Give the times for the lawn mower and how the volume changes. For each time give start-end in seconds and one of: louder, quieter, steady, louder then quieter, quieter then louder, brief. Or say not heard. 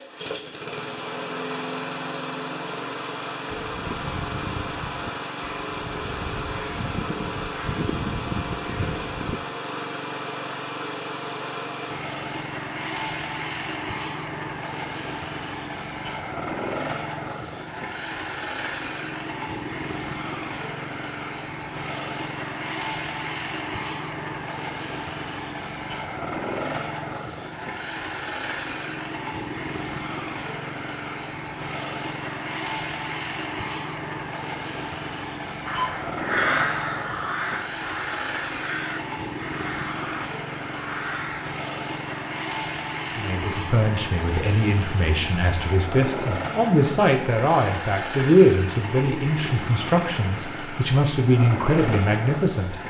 0.0-52.8 steady.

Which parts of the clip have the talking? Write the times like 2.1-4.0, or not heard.
43.1-52.8.